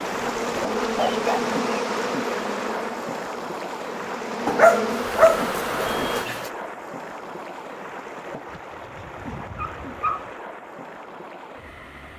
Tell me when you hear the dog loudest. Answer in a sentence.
The volume of the dog peaks at 5 seconds.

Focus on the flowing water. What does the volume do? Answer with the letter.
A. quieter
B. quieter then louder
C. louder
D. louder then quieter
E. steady
A.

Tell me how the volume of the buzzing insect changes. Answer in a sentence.
The volume of the buzzing insect goes down, then up.